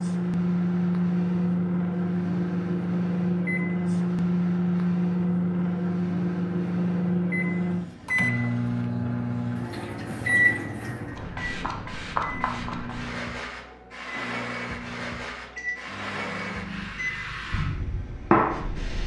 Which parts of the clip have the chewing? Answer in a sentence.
The chewing can't be heard in this clip.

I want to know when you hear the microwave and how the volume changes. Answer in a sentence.
You can hear the microwave from 0.0 to 19.0 s, getting quieter.